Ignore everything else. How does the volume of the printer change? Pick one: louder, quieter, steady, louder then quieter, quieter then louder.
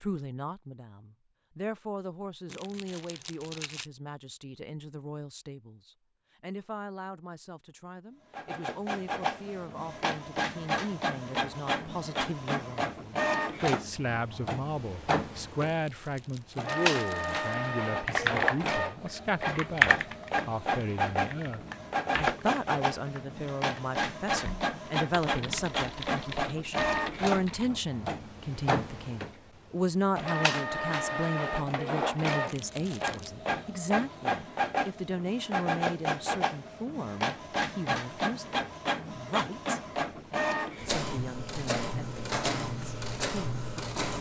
steady.